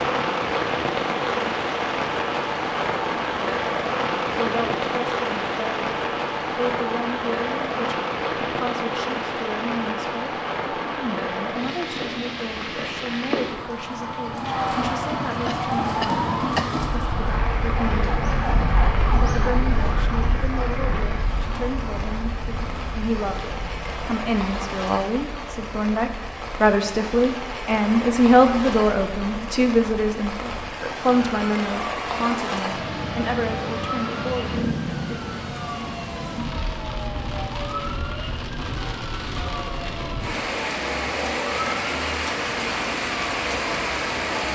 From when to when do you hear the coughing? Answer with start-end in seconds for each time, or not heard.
15.4-16.7.